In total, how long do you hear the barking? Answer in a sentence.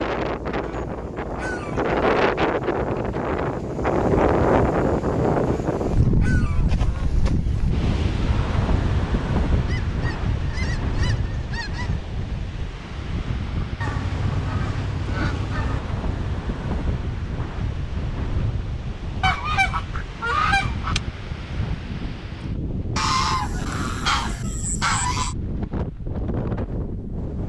You can't hear the barking here.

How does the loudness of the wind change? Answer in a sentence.
The loudness of the wind goes down.